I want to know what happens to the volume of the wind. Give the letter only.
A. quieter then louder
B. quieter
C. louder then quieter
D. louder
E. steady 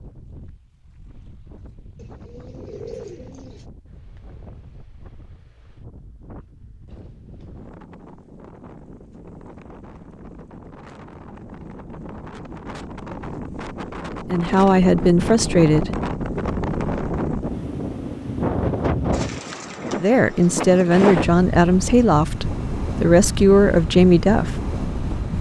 D.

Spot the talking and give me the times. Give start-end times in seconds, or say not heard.
14.3-15.9, 19.9-24.6.